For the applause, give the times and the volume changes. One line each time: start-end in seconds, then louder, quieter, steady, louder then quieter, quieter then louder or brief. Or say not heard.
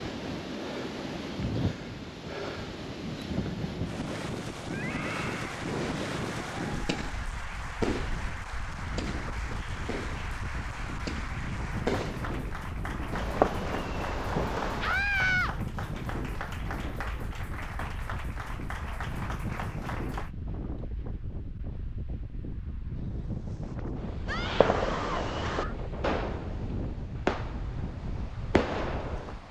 5.1-20.3 steady.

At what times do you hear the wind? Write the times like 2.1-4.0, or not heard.
0.0-29.4.